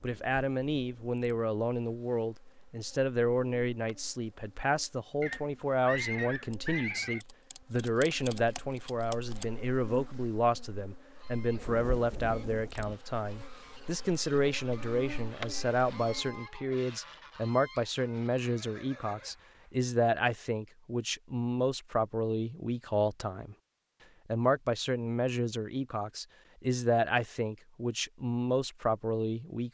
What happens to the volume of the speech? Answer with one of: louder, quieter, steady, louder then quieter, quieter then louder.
steady.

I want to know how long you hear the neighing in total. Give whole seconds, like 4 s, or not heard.
3 s.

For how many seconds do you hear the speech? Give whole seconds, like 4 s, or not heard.
29 s.